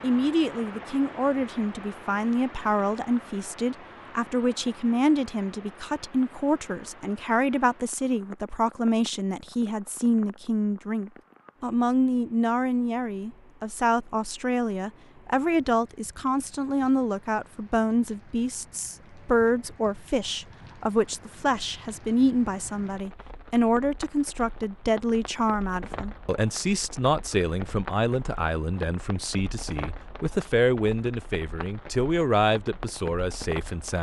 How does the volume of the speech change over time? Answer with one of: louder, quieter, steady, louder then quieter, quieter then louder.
steady.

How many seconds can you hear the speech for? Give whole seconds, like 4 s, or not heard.
34 s.